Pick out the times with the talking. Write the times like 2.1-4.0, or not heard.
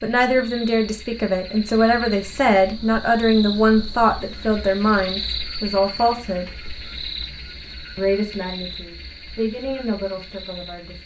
0.0-6.5, 8.0-11.0.